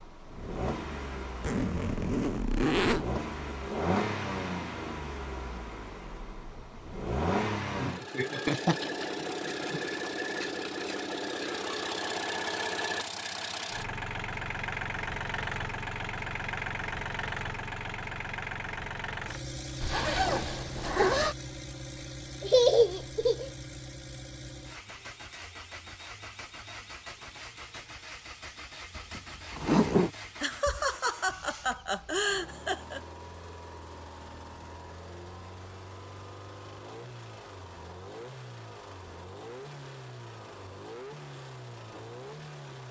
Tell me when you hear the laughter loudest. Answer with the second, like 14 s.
23 s.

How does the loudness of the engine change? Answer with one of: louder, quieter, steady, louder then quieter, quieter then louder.
quieter.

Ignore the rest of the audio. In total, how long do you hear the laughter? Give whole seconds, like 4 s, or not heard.
5 s.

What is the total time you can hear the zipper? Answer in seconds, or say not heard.
4 s.